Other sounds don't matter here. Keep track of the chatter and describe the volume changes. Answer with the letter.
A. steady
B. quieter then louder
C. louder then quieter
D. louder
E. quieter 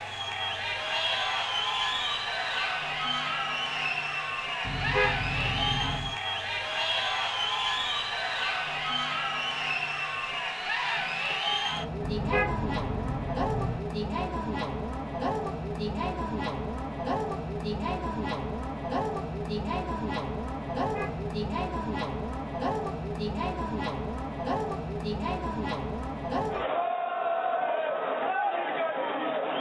A.